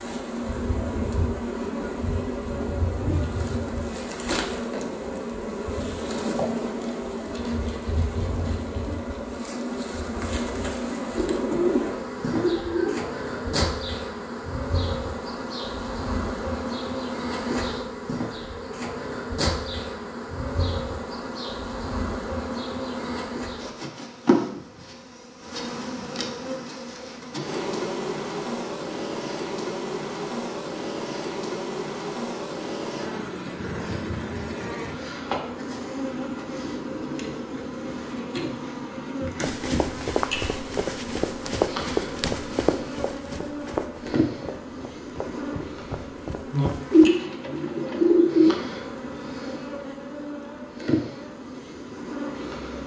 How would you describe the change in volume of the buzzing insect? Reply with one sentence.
The volume of the buzzing insect stays about the same.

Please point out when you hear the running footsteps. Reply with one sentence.
The running footsteps can be heard from 39.4 to 47.1 s.